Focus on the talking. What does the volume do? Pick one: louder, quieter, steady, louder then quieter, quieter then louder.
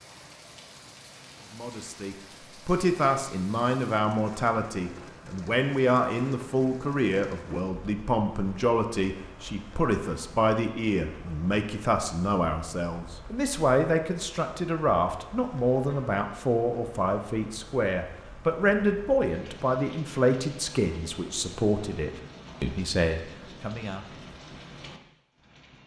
steady.